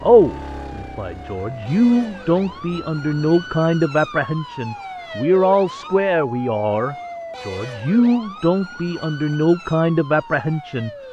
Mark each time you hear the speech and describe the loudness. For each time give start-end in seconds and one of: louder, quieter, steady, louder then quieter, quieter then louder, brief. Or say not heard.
0.0-10.9 steady.